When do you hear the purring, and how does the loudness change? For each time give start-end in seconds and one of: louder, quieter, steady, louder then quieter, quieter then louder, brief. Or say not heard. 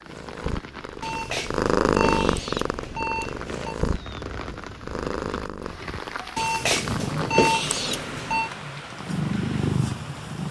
0.0-10.4 quieter then louder.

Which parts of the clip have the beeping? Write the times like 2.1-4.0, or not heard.
1.0-3.8, 6.3-8.5.